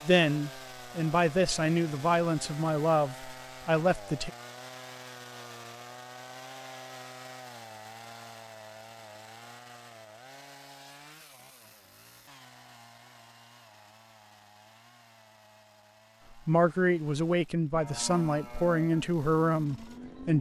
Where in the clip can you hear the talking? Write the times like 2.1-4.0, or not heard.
0.1-4.3, 16.4-20.3.